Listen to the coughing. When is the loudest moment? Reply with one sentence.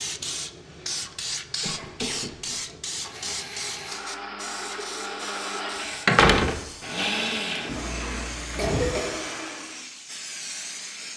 The loudest moment of the coughing is at 9 seconds.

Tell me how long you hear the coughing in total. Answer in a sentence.
You can hear the coughing for 3 seconds altogether.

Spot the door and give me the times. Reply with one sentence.
You can hear the door from 6.0 to 7.4 s.